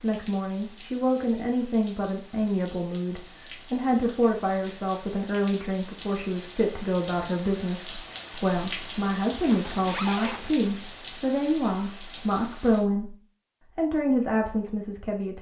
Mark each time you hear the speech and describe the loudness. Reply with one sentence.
The speech can be heard from 0.0 to 13.2 s, at a steady volume; and briefly from 13.8 to 15.3 s.